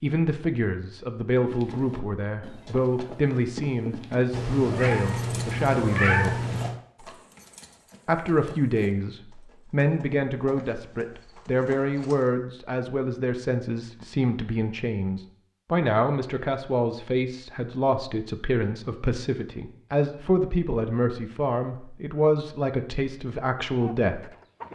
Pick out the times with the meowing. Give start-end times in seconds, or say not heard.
4.3-6.8.